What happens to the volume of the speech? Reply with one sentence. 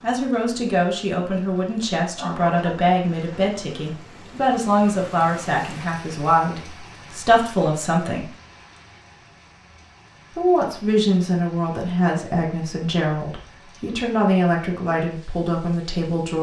The volume of the speech stays about the same.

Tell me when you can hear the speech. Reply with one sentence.
The speech can be heard from 0.0 to 8.3 s and from 10.3 to 16.3 s.